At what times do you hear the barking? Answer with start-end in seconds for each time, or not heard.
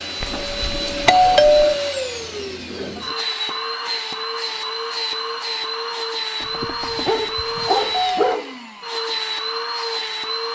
6.6-8.5.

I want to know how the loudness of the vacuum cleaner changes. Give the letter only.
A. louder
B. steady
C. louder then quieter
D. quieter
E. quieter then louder
B.